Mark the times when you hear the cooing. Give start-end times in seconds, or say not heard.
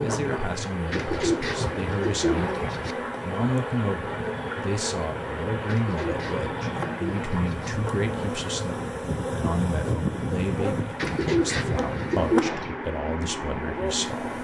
0.9-3.0, 5.7-7.7, 10.9-12.8.